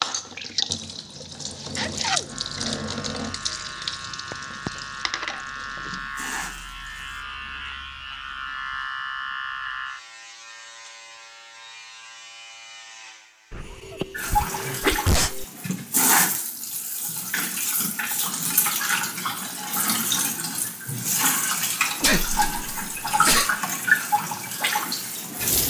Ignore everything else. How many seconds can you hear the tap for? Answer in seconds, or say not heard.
19 s.